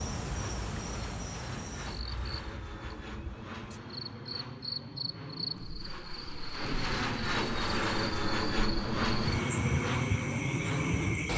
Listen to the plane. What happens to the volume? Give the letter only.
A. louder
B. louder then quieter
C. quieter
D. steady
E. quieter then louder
A.